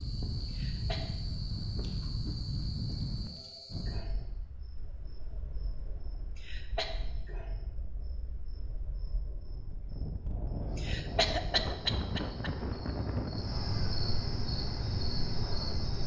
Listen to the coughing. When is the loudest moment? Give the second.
12 s.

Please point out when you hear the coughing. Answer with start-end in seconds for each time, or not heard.
0.5-1.1, 6.3-7.0, 10.8-12.5.